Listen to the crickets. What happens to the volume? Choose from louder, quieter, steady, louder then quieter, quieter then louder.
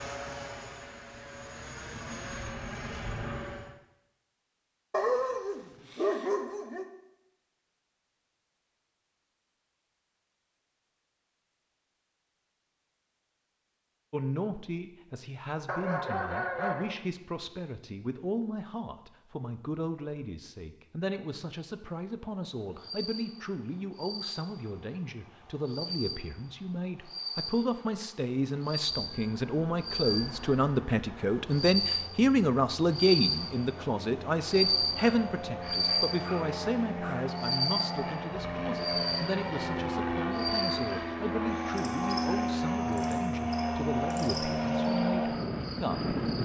louder then quieter.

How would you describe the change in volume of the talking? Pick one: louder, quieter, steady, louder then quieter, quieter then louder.
louder then quieter.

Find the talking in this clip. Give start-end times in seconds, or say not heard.
14.1-46.4.